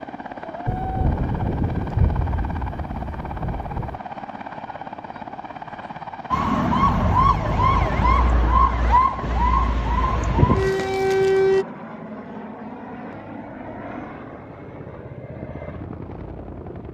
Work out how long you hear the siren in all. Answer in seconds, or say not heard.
5 s.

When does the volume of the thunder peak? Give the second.
2 s.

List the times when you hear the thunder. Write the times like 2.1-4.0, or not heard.
0.7-4.0.